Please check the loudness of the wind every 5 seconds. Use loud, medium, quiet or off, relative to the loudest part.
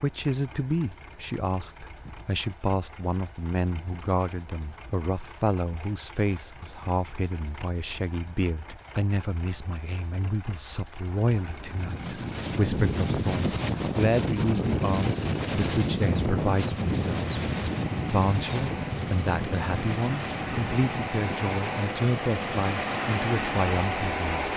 off, off, loud, loud, medium.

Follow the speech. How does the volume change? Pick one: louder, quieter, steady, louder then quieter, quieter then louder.
steady.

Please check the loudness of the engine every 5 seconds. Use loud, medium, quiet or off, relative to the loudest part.
quiet, quiet, quiet, medium, loud.